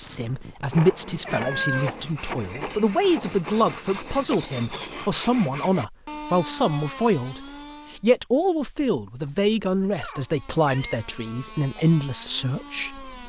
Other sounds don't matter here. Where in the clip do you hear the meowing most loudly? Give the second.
2 s.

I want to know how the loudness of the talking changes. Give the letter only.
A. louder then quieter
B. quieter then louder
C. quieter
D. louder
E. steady
E.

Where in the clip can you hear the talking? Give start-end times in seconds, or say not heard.
0.0-13.1.